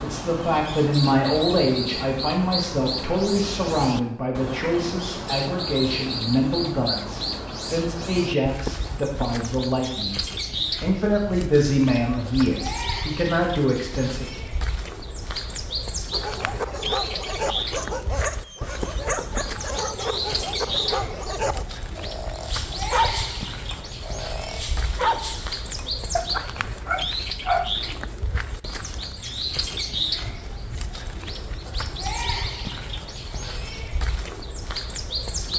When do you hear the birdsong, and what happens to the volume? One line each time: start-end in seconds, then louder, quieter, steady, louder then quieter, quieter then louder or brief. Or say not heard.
0.0-35.5 steady.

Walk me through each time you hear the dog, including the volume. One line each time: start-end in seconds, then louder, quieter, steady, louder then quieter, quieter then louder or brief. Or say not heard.
16.1-27.8 steady.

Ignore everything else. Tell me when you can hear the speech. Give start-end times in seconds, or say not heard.
0.0-10.2, 10.8-14.2.